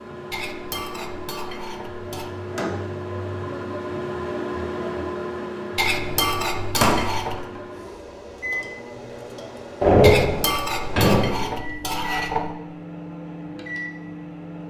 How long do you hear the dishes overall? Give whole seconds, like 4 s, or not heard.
6 s.